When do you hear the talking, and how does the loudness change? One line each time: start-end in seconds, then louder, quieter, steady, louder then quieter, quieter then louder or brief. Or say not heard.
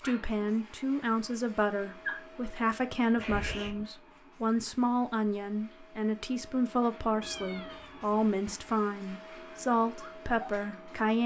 0.0-11.2 steady.